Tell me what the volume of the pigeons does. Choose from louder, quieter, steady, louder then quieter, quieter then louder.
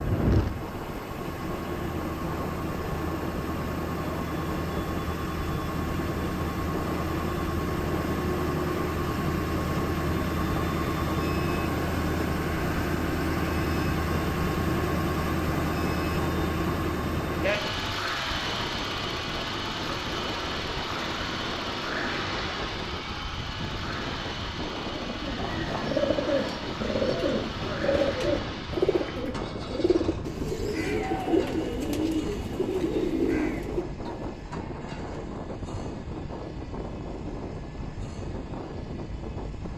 steady.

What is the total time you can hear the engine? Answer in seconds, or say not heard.
40 s.